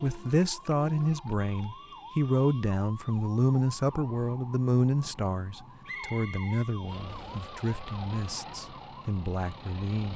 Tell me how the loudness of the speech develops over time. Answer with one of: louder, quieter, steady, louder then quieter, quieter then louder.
quieter.